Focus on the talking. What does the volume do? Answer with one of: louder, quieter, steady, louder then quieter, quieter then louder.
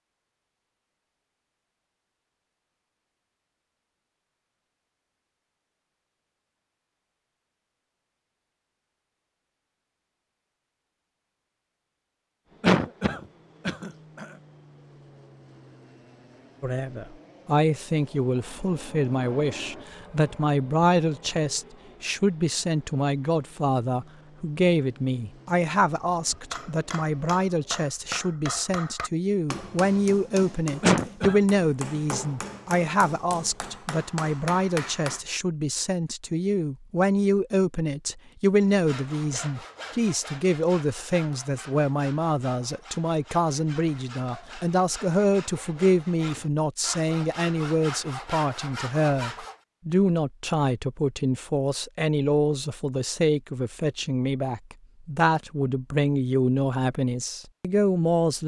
steady.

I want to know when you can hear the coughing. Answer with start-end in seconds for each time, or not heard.
12.6-14.2, 30.8-31.4.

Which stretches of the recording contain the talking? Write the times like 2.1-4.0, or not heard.
16.6-58.4.